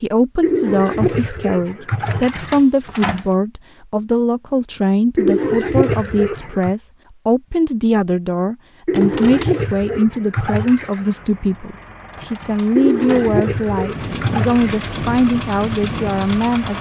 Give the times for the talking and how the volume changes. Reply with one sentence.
The talking can be heard from 0.0 to 16.7 s, at a steady volume.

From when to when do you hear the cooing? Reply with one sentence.
The cooing can be heard from 0.4 to 2.6 s, from 5.2 to 6.7 s, from 8.8 to 11.1 s and from 12.8 to 14.9 s.